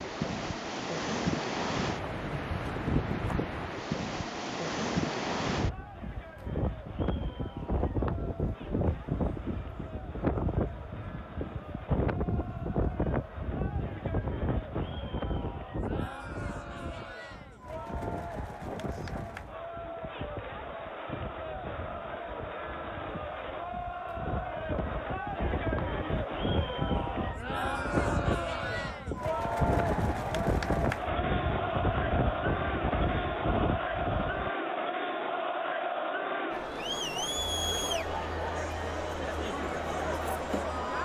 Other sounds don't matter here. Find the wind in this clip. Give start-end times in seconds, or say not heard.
0.0-34.5.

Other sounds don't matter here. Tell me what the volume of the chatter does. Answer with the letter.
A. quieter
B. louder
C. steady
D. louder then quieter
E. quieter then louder
B.